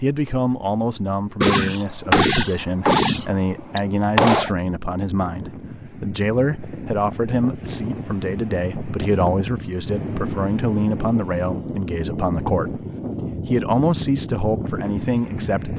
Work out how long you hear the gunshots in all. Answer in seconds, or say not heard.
3 s.